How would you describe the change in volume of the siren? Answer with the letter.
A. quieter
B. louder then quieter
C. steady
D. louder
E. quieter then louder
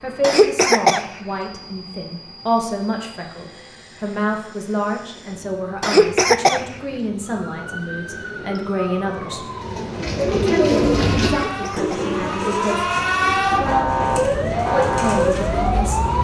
D.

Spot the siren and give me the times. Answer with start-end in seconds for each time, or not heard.
7.4-16.1.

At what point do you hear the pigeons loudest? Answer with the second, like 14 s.
11 s.